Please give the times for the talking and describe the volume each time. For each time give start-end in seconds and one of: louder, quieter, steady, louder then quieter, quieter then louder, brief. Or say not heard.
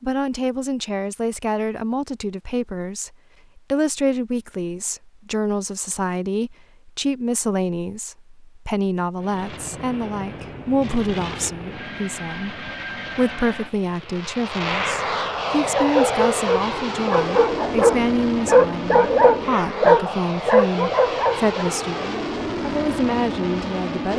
0.0-24.1 steady.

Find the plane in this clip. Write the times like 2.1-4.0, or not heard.
9.2-24.1.